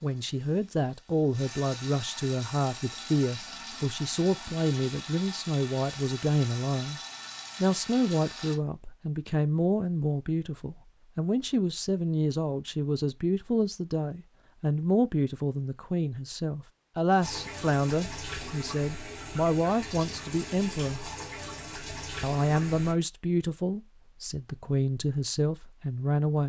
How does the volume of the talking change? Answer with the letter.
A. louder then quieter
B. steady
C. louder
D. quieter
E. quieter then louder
B.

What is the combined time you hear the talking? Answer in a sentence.
The talking can be heard for 25 seconds in total.